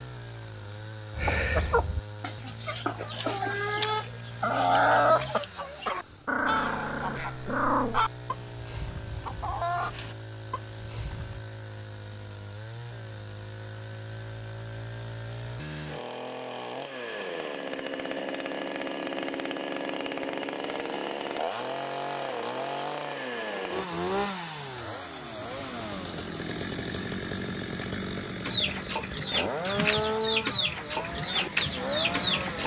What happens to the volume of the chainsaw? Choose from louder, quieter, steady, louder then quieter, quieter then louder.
louder.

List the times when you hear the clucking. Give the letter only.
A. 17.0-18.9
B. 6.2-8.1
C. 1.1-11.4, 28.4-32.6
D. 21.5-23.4
C.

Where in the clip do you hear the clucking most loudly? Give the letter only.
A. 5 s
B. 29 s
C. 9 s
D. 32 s
A.